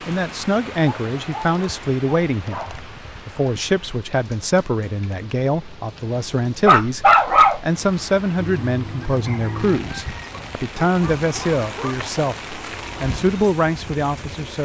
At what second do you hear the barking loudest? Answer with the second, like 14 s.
7 s.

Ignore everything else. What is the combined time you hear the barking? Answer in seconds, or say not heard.
5 s.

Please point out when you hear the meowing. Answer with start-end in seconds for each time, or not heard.
not heard.